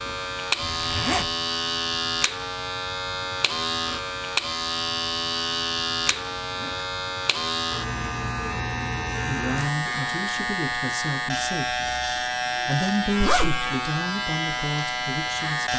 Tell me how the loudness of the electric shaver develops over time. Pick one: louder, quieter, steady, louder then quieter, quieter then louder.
steady.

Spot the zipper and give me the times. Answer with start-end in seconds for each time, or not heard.
0.6-1.3, 6.0-6.9, 13.2-13.7.